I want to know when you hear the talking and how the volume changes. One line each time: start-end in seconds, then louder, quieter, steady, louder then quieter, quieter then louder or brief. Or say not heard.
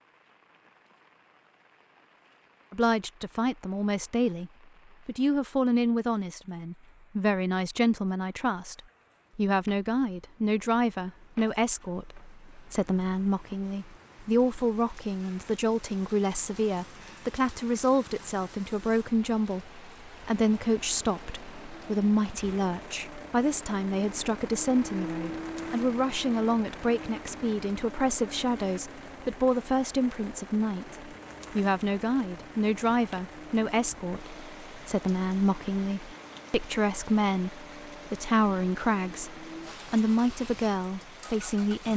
2.7-41.9 steady.